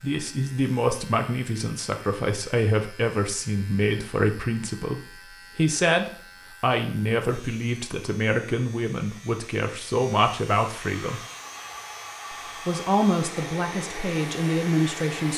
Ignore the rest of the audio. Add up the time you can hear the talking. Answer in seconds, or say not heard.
14 s.